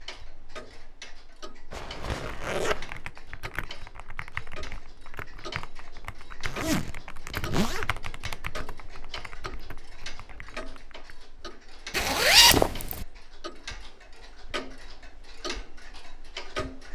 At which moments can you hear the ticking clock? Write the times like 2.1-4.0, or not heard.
0.0-16.8.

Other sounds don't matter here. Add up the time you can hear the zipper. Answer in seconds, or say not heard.
4 s.